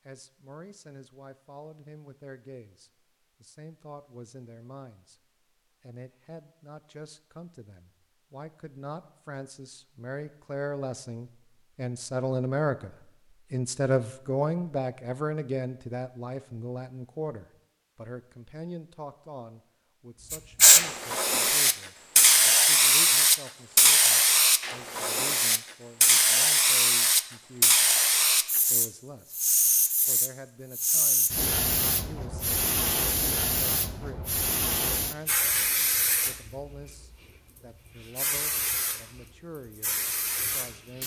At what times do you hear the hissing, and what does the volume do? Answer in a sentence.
You can hear the hissing from 20.3 to 41.0 s, getting quieter.